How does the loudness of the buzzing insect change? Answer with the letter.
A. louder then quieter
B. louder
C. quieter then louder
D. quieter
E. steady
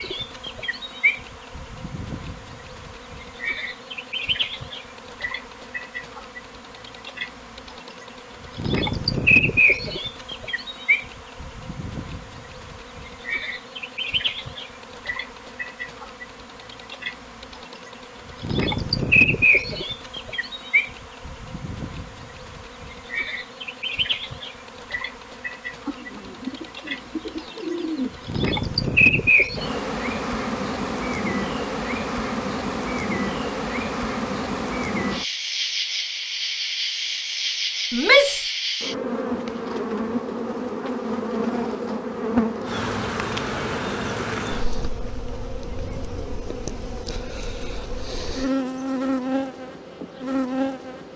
E.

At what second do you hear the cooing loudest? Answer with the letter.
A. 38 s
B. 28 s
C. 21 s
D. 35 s
B.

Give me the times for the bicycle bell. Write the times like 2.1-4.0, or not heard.
not heard.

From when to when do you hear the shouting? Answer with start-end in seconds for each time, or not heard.
37.9-38.5.